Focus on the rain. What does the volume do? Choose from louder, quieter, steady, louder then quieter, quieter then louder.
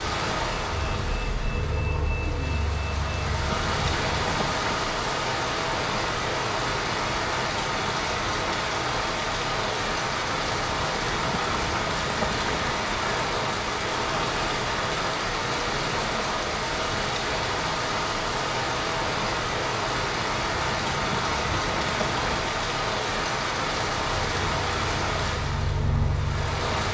steady.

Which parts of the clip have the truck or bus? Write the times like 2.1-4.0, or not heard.
0.0-4.2, 24.1-26.8.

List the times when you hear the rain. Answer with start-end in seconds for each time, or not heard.
0.0-26.8.